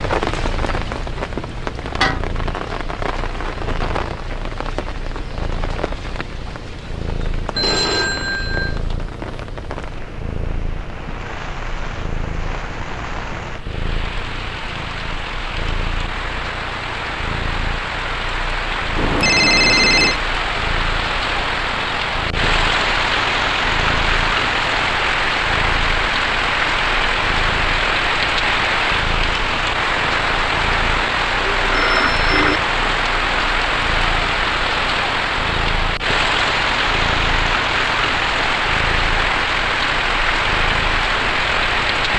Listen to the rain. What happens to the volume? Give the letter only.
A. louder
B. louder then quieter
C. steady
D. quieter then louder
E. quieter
A.